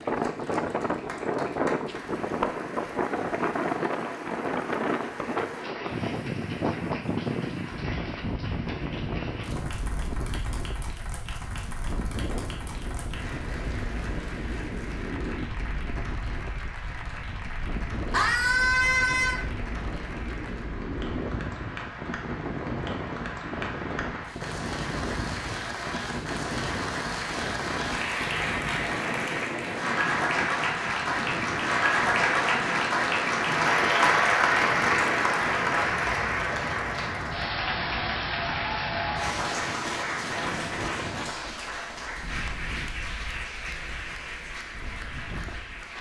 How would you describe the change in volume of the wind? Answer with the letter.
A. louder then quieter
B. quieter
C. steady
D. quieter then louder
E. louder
B.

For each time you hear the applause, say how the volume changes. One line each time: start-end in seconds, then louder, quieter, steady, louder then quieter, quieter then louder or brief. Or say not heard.
0.0-45.9 louder then quieter.